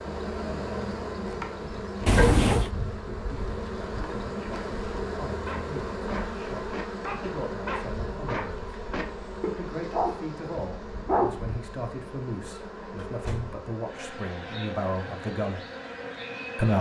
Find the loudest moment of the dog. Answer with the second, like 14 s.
11 s.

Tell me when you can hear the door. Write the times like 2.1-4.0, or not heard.
2.0-2.7, 12.5-13.6.